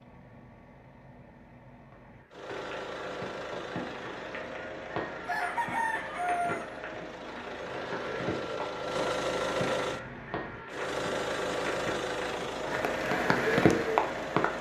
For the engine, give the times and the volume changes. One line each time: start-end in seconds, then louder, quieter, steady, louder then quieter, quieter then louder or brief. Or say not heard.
0.0-14.5 louder.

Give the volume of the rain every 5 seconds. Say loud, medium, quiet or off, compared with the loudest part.
medium, medium, loud.